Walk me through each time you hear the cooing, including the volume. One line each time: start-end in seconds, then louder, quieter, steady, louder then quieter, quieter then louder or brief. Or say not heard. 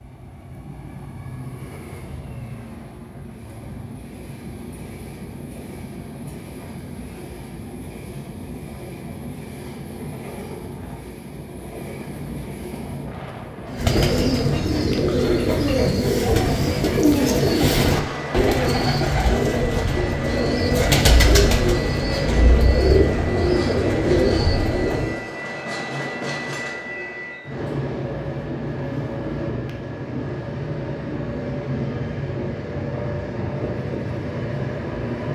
13.7-25.2 steady.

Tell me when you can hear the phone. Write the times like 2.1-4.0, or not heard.
not heard.